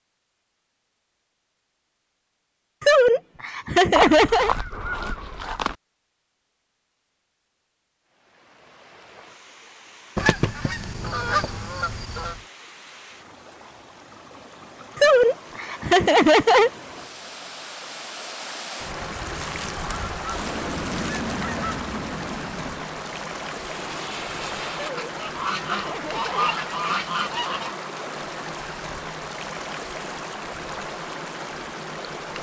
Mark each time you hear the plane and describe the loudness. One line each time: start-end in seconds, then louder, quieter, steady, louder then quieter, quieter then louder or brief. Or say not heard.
20.3-24.9 quieter then louder.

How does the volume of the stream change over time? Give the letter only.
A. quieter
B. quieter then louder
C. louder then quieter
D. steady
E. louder
E.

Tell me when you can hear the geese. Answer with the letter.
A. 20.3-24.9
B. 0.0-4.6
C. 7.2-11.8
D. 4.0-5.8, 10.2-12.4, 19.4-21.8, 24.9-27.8
D.